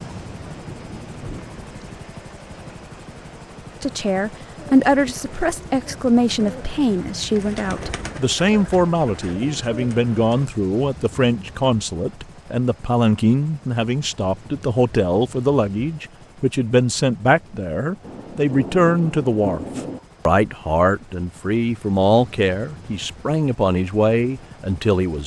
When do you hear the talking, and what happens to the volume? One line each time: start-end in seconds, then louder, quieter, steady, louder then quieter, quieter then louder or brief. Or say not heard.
3.8-25.2 steady.